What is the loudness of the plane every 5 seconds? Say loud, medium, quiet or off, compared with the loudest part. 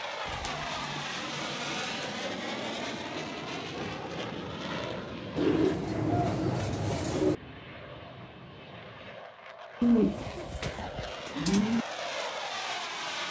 loud, medium, loud.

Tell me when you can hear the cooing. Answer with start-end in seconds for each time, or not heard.
0.2-2.1, 5.3-7.3, 9.8-11.8.